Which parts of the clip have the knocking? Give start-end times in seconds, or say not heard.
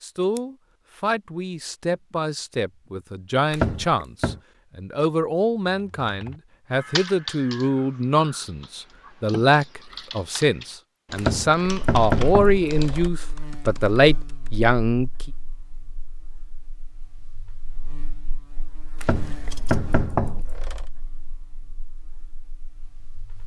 3.5-4.4, 11.2-13.1, 19.0-20.9.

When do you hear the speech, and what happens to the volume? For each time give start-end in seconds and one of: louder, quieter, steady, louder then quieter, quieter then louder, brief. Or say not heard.
0.0-15.1 louder.